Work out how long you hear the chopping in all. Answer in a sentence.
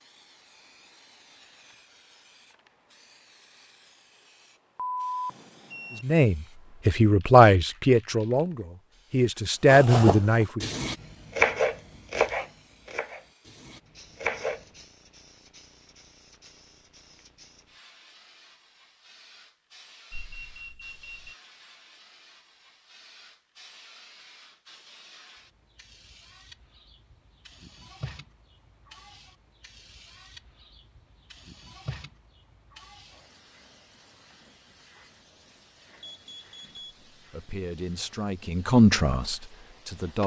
The chopping can be heard for 5 seconds in total.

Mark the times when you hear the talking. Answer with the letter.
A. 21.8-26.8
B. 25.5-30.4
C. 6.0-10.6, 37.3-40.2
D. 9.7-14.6
C.